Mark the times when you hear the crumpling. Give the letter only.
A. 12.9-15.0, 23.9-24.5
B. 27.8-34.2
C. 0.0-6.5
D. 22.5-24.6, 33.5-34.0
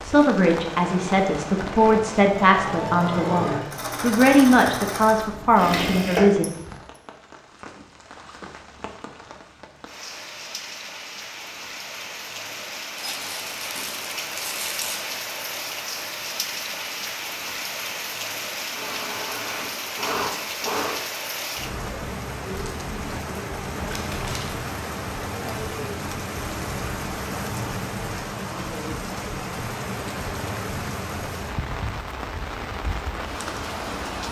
A.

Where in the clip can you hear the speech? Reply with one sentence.
You can hear the speech from 0.0 to 6.5 s.